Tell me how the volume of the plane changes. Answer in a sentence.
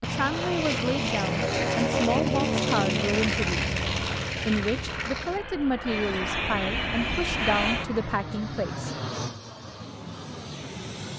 The volume of the plane goes down.